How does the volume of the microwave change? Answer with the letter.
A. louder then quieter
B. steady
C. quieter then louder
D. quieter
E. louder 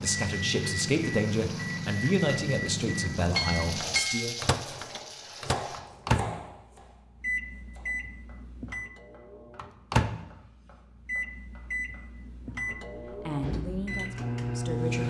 B.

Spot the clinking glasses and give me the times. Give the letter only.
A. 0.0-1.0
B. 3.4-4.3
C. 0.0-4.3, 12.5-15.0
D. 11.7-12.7
B.